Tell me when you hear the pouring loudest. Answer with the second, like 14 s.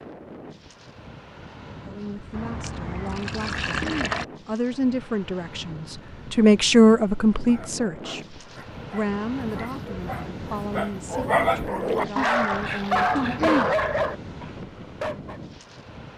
4 s.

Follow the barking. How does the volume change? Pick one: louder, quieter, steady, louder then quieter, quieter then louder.
louder.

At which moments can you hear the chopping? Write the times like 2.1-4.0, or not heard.
not heard.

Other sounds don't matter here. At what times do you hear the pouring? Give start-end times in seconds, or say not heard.
2.3-4.2, 11.7-13.0.